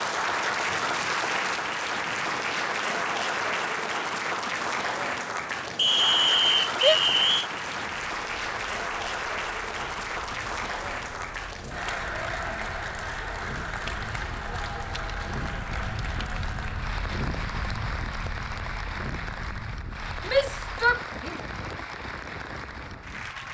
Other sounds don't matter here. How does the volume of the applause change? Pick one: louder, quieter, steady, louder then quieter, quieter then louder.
quieter.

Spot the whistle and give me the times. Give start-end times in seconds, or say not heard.
5.8-7.5.